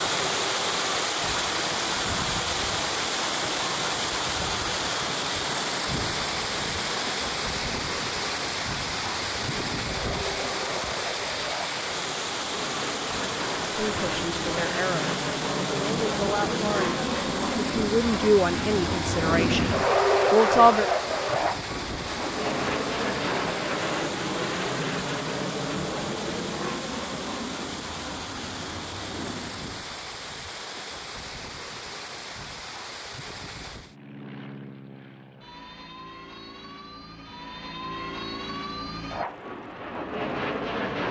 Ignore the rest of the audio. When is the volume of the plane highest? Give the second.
20 s.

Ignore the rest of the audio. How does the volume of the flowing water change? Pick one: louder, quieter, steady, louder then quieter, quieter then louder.
quieter.